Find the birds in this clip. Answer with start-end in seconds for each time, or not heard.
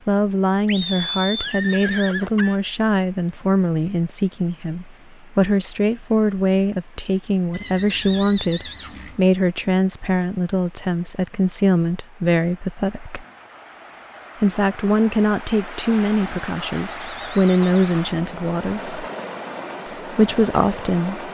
not heard.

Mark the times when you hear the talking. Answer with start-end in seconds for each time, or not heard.
0.1-13.2, 14.4-19.1, 19.9-21.2.